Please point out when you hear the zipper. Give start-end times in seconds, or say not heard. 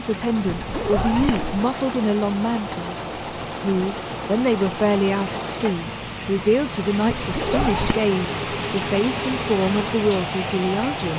0.5-1.6, 7.2-8.0.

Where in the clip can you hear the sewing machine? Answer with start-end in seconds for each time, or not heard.
0.0-11.1.